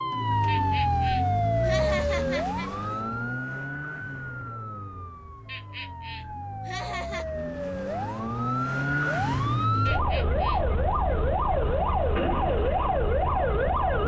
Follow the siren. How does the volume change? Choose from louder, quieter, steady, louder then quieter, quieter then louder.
quieter then louder.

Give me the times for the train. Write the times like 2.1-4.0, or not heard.
not heard.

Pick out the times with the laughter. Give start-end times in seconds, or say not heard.
0.5-2.7, 5.5-7.2, 9.8-10.6.